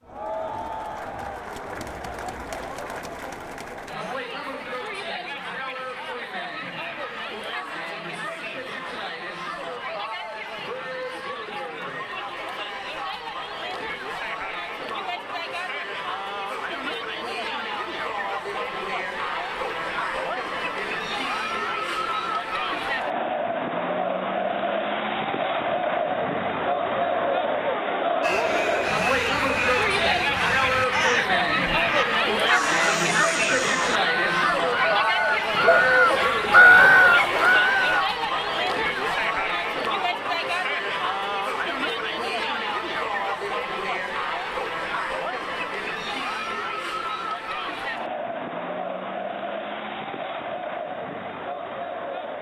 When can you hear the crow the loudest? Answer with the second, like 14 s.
37 s.